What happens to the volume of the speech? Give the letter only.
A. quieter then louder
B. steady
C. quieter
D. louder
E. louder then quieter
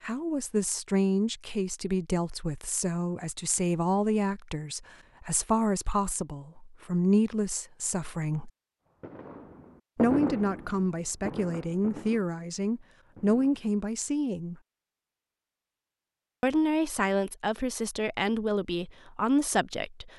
B.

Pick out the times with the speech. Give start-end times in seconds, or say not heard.
0.0-8.5, 9.9-14.6, 16.4-20.1.